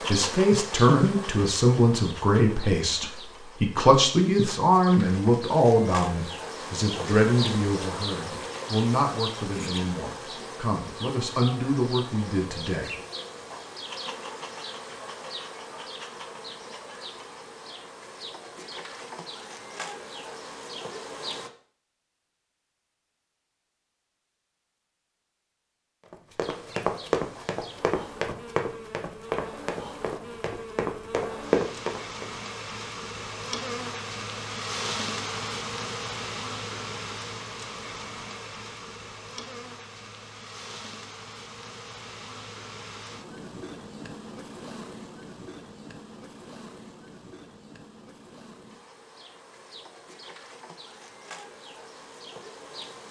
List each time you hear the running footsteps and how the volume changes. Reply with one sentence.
You can hear the running footsteps from 26.1 to 32.3 s, getting quieter then louder.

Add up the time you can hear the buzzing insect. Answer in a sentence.
The buzzing insect can be heard for 48 seconds in total.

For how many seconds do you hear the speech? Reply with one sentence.
You can hear the speech for 13 seconds altogether.